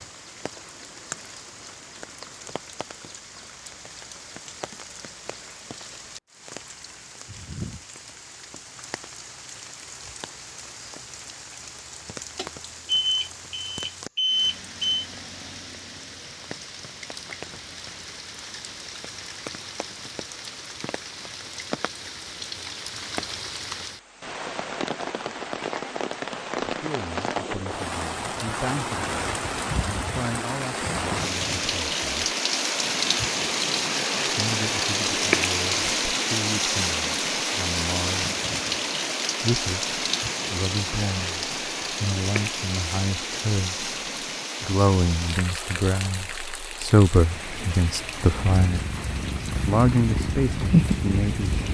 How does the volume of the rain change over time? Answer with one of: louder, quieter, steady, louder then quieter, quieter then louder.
louder then quieter.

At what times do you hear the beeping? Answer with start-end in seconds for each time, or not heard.
12.3-15.1.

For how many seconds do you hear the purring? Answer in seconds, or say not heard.
3 s.